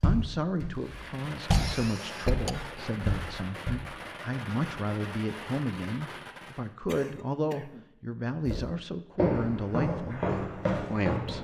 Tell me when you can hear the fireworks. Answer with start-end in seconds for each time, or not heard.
0.8-6.8.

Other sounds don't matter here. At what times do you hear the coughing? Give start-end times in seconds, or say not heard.
1.3-2.8, 6.8-7.8.